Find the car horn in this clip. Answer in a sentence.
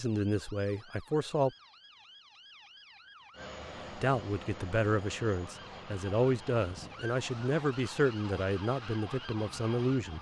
You can't hear the car horn here.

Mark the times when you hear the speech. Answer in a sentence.
The speech can be heard from 0.0 to 1.5 s and from 4.0 to 10.1 s.